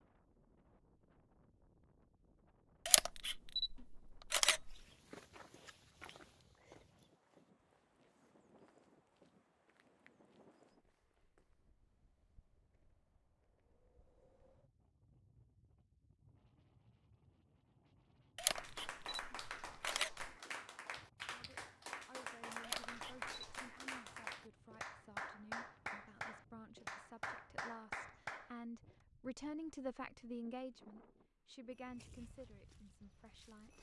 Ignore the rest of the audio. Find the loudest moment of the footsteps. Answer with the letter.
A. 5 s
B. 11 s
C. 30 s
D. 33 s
A.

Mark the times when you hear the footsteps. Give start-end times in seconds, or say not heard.
4.7-11.7, 31.7-33.7.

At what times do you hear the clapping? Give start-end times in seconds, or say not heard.
18.4-28.9.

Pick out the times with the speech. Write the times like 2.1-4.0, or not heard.
21.2-33.7.